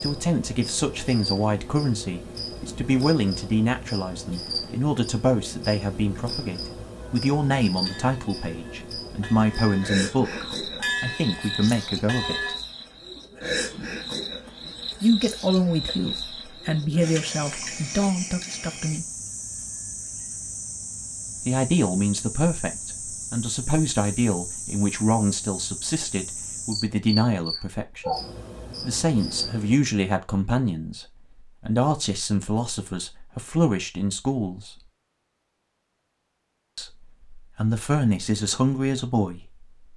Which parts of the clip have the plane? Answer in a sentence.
You can't hear the plane here.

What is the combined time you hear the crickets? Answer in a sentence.
The crickets can be heard for 30 seconds in total.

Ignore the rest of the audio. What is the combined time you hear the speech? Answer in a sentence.
The speech can be heard for 32 seconds in total.